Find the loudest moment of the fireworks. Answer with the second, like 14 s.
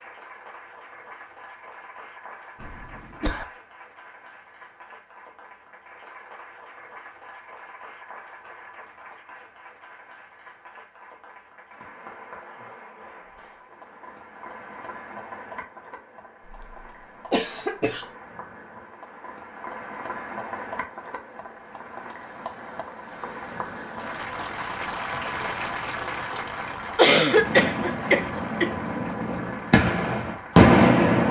31 s.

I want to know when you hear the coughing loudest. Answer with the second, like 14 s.
27 s.